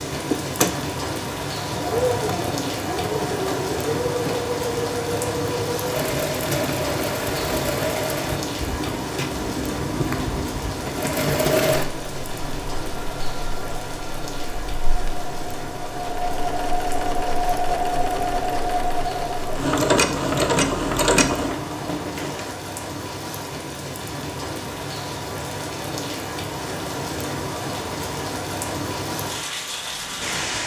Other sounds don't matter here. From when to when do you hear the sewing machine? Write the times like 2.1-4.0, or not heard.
0.1-22.6.